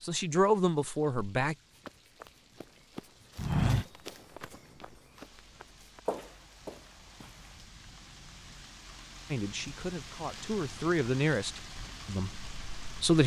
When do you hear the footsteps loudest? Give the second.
4 s.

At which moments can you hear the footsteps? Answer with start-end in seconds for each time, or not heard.
1.8-7.6.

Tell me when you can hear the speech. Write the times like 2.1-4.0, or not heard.
0.0-1.6, 9.3-13.2.